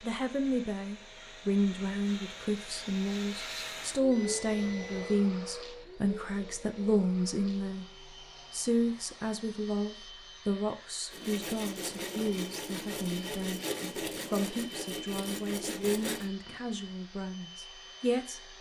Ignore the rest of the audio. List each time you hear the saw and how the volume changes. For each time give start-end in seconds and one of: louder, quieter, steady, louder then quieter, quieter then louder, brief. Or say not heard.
11.1-16.3 steady.